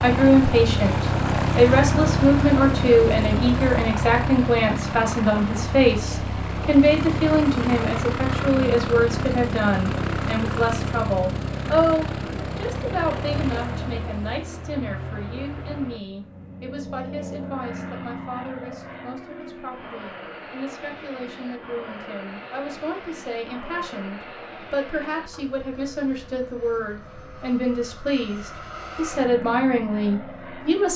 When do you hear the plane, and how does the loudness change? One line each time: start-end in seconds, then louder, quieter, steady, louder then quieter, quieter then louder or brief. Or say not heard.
0.0-30.9 quieter.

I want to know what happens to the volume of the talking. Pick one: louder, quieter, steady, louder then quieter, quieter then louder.
quieter then louder.